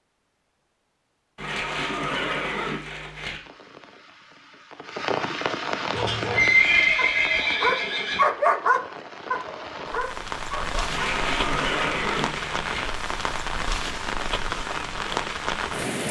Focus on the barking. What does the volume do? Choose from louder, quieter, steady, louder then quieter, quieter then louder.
louder then quieter.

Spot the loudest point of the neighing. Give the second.
7 s.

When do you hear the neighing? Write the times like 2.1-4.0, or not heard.
1.4-3.4, 6.0-8.2, 10.8-12.9.